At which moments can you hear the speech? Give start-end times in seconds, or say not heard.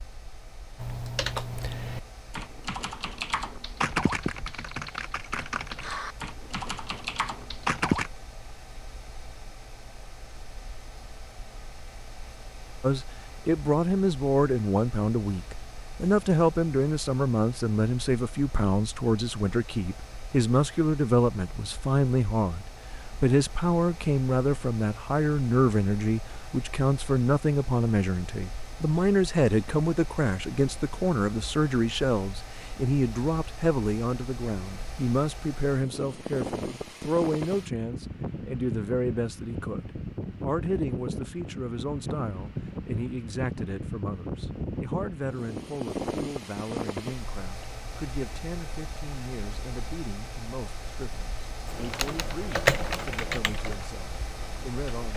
12.8-55.1.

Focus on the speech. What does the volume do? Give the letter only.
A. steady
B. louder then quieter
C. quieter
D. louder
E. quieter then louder
C.